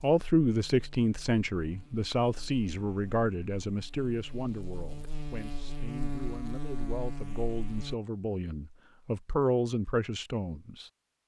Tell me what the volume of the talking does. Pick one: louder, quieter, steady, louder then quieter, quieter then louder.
quieter then louder.